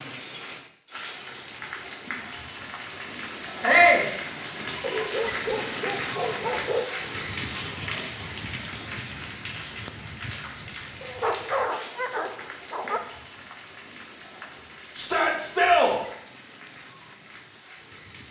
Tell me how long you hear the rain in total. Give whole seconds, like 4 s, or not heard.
18 s.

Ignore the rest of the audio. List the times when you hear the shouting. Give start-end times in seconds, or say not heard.
3.6-4.1, 14.9-15.9.